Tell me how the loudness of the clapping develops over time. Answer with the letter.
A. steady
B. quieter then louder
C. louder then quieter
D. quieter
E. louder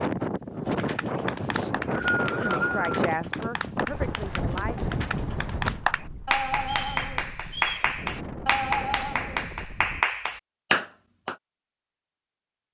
E.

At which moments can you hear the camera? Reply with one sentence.
The camera can't be heard in this clip.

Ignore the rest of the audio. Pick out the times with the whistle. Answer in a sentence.
The whistle can be heard from 1.5 to 3.0 s and from 6.6 to 7.9 s.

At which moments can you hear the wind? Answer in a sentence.
You can hear the wind from 0.0 to 10.1 s.